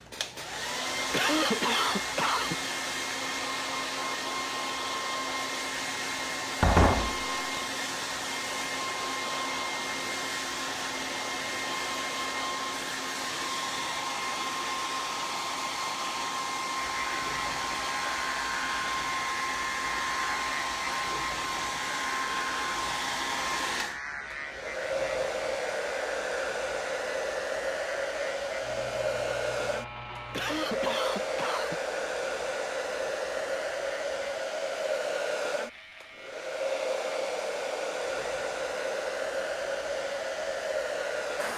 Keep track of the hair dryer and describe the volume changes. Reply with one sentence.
The loudness of the hair dryer stays about the same.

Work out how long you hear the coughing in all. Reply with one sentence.
You can hear the coughing for 3 seconds altogether.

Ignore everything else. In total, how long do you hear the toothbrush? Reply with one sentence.
The toothbrush can't be heard in this clip.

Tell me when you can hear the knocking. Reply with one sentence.
You can hear the knocking from 6.6 to 7.6 s.